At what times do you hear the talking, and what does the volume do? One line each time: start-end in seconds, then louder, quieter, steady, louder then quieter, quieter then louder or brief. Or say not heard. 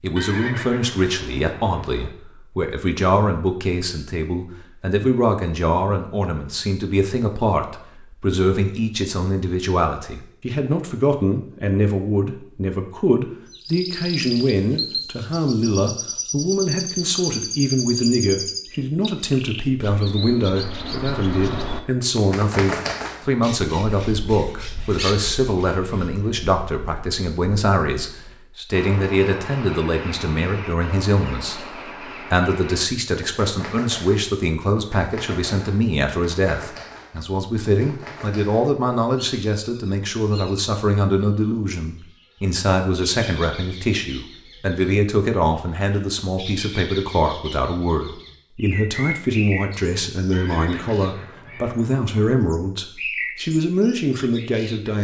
0.0-54.9 steady.